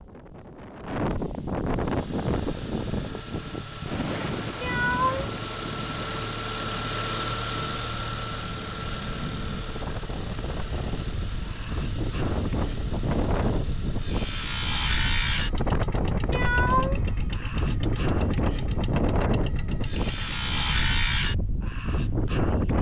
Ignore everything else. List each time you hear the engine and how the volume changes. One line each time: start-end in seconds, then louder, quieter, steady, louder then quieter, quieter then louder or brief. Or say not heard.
1.8-20.8 louder then quieter.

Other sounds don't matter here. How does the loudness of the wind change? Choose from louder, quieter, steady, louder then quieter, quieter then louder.
quieter then louder.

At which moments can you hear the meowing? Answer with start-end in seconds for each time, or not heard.
4.6-5.3, 16.3-17.2.